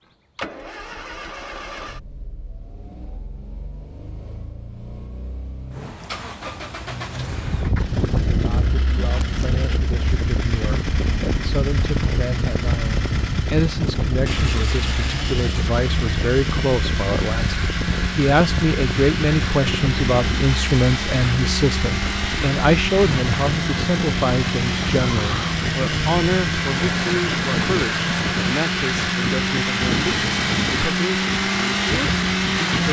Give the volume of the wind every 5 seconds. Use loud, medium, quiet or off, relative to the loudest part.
off, loud, loud, loud, loud, loud, loud.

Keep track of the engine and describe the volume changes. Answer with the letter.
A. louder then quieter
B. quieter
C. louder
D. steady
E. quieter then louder
C.